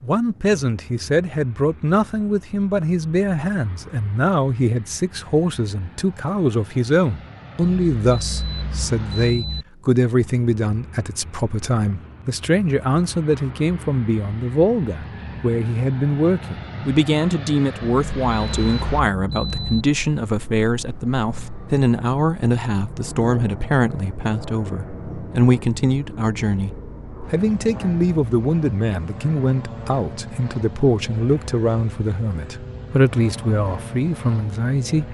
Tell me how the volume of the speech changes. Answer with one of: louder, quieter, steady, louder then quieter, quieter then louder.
steady.